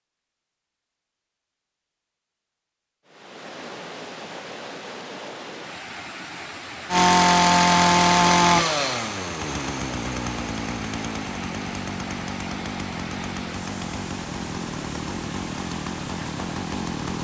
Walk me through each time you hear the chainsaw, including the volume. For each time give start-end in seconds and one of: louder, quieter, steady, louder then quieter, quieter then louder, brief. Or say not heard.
6.9-17.1 quieter.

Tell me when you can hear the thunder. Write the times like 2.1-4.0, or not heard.
not heard.